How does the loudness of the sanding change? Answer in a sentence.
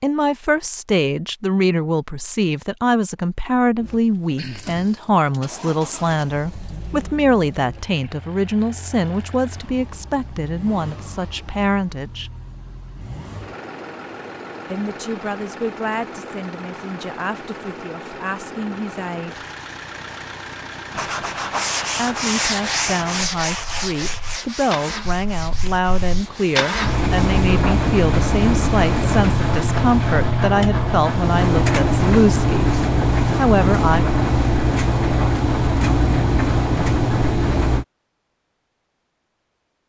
The volume of the sanding goes down.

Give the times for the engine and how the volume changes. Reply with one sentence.
The engine can be heard from 3.8 to 37.9 s, getting louder.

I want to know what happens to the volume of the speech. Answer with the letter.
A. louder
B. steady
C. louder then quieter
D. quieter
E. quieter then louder
E.